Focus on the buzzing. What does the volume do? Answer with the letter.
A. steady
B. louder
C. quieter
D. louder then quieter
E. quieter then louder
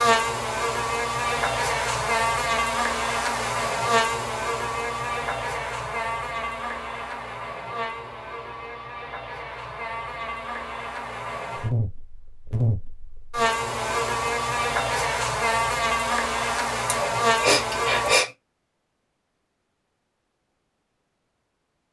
E.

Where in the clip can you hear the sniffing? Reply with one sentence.
You can hear the sniffing from 16.9 to 18.3 s.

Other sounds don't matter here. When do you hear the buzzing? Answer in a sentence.
You can hear the buzzing from 0.0 to 18.2 s.